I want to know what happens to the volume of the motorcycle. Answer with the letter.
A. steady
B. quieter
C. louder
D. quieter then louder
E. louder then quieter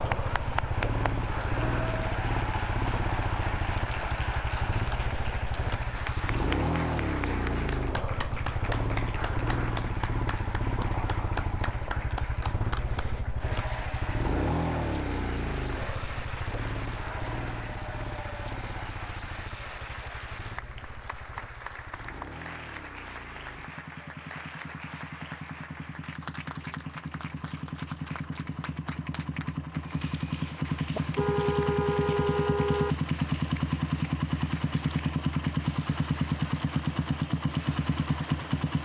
D.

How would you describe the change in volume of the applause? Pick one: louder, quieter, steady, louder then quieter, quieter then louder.
quieter.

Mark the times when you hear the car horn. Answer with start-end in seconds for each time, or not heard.
30.9-33.0.